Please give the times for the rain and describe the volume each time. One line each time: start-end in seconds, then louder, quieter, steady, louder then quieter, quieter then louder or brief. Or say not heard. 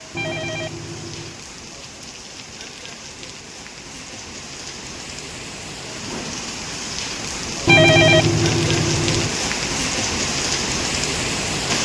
0.0-11.8 louder.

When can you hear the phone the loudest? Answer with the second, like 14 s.
8 s.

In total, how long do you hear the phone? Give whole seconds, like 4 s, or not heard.
3 s.